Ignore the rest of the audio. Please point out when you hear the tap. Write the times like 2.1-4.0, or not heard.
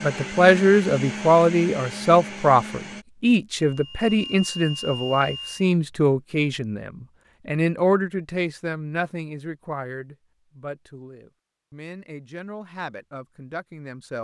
not heard.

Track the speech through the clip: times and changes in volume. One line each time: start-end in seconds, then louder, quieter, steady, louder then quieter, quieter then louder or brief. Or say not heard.
0.0-14.1 quieter.